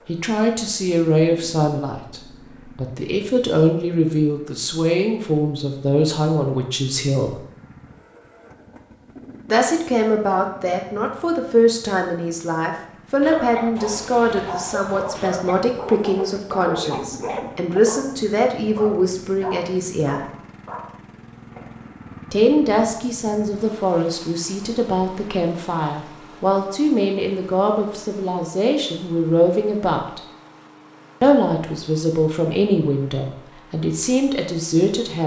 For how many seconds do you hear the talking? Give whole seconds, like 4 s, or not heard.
30 s.